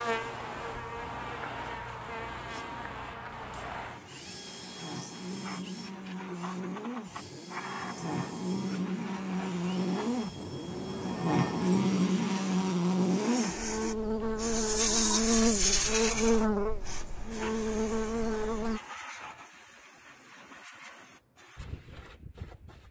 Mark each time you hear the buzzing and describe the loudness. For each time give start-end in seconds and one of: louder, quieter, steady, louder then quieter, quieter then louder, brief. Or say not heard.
0.0-18.8 louder.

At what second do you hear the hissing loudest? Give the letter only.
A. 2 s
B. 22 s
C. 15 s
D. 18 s
C.